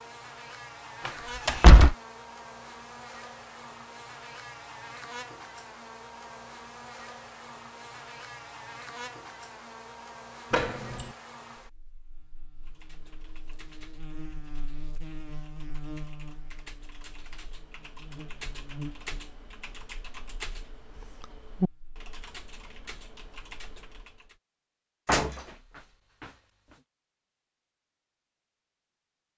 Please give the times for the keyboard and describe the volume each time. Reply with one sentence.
You can hear the keyboard from 12.6 to 24.4 s, getting louder then quieter.